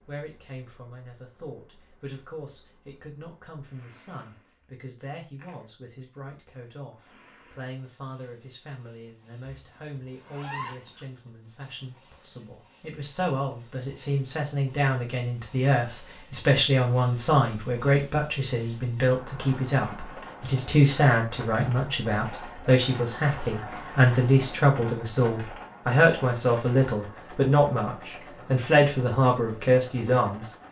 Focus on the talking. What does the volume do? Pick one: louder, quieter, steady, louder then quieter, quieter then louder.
louder.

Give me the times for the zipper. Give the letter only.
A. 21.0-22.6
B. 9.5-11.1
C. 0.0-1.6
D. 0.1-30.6
B.